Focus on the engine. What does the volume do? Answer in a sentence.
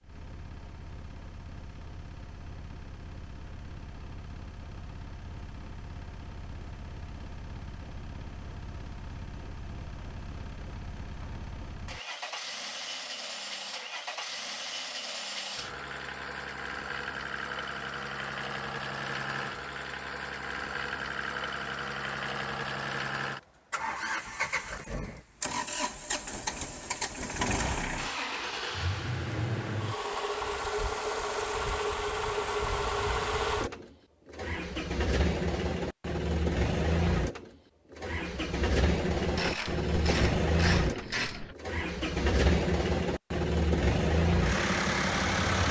The loudness of the engine goes up.